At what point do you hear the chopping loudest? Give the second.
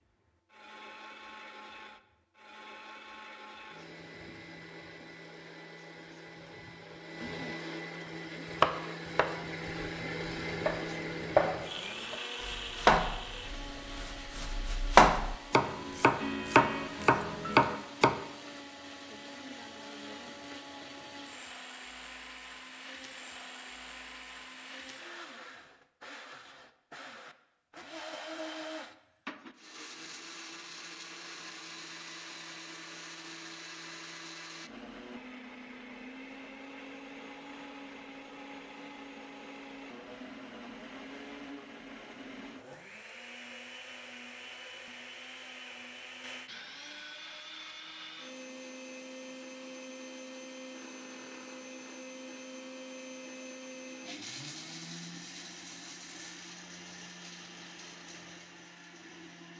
15 s.